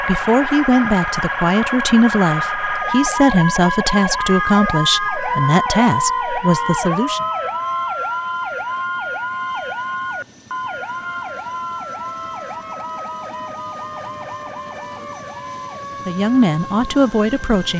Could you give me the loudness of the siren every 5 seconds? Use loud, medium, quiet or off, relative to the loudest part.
loud, loud, medium, medium.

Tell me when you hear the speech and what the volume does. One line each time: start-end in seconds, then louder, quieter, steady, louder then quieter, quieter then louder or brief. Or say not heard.
0.0-7.2 steady
16.1-17.7 brief.